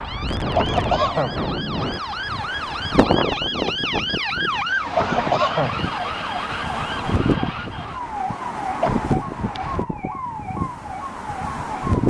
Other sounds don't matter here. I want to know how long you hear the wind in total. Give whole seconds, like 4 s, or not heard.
12 s.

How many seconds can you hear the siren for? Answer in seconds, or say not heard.
12 s.